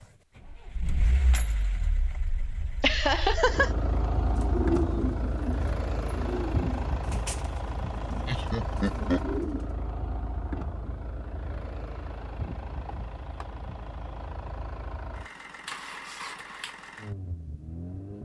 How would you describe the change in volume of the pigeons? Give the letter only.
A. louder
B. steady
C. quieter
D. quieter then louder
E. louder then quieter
D.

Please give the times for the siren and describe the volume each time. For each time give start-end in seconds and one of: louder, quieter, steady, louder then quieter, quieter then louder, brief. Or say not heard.
not heard.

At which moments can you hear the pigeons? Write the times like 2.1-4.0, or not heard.
4.2-9.8.